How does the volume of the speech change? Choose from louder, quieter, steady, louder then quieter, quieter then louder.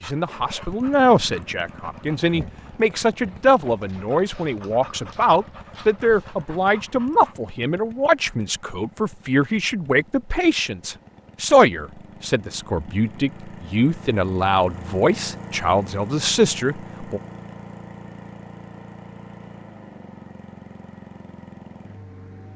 steady.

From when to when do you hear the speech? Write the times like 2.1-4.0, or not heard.
0.0-17.2.